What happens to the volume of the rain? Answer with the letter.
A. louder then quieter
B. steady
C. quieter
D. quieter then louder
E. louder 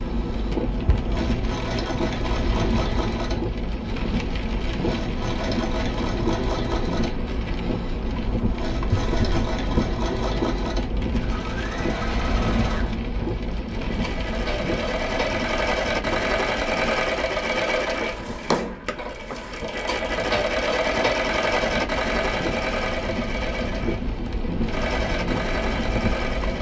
D.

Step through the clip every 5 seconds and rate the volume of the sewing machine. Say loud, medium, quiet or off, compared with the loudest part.
medium, medium, medium, loud, loud, loud.